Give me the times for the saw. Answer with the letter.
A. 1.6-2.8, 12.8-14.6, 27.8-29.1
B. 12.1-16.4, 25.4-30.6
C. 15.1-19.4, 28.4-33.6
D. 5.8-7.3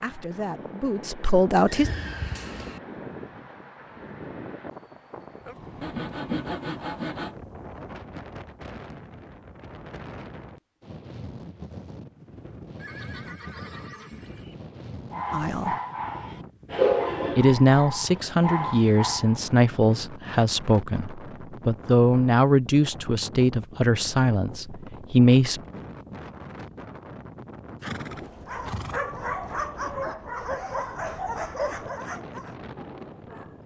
D.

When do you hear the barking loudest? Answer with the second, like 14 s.
17 s.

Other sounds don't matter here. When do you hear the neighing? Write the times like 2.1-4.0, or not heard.
1.6-2.8, 12.8-14.6, 27.8-29.1.